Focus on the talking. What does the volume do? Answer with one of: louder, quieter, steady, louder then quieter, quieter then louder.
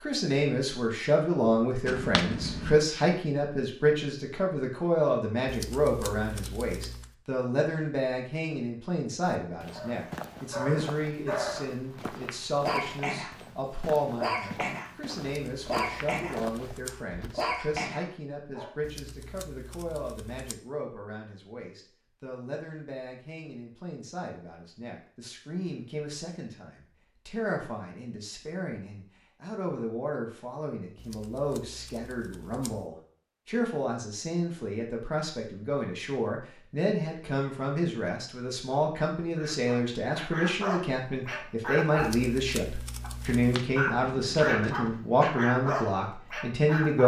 quieter then louder.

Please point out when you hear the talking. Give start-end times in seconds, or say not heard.
0.0-47.0.